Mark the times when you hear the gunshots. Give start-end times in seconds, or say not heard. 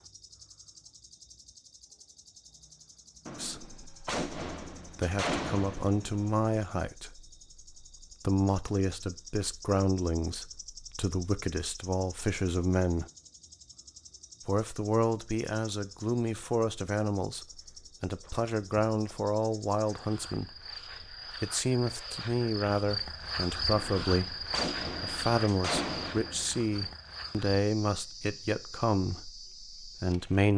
3.2-6.5, 23.7-26.9.